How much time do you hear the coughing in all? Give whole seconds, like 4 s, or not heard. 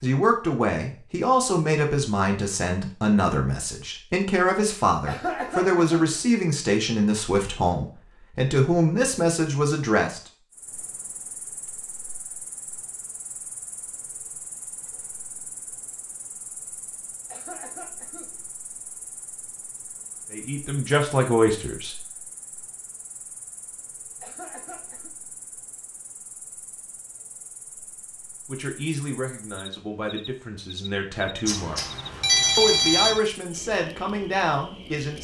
3 s.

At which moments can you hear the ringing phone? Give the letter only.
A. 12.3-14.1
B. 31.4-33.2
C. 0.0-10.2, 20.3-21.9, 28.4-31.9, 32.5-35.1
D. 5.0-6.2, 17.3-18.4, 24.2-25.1
B.